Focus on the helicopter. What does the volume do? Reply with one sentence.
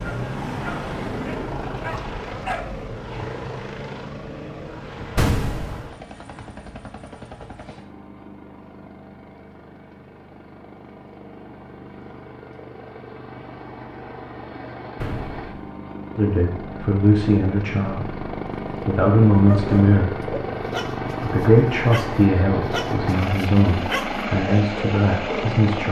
The volume of the helicopter goes down, then up.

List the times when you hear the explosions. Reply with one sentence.
You can hear the explosions from 5.2 to 5.8 s and from 15.0 to 15.5 s.